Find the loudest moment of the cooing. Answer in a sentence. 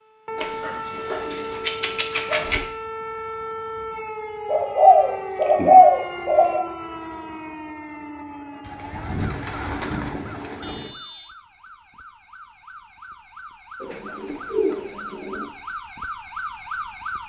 The loudest moment of the cooing is at 6 seconds.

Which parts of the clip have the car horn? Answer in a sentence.
The car horn can be heard from 10.6 to 11.3 s.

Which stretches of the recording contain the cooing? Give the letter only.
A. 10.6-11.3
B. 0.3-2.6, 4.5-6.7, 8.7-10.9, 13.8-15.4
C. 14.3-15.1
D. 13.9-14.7
B.